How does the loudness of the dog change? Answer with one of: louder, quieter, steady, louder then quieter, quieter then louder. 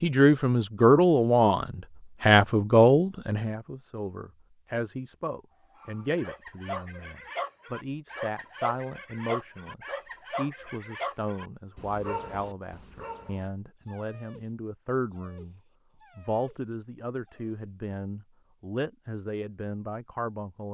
quieter.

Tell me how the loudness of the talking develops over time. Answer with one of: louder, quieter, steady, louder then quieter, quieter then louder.
quieter.